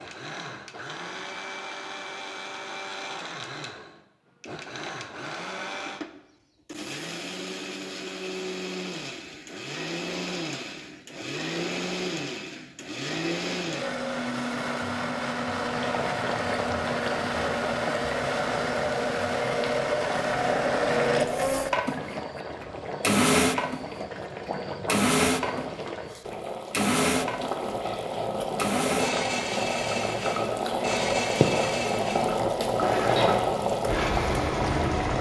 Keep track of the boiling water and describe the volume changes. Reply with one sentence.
The volume of the boiling water goes up.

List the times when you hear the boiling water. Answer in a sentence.
You can hear the boiling water from 15.7 to 35.1 s.